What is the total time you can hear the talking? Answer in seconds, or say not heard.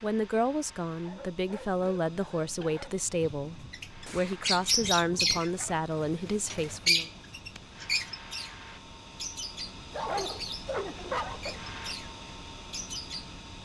7 s.